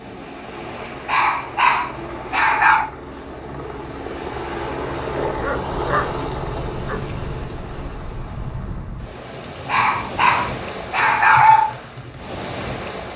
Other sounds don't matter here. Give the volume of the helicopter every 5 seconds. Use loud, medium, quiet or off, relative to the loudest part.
loud, loud, off.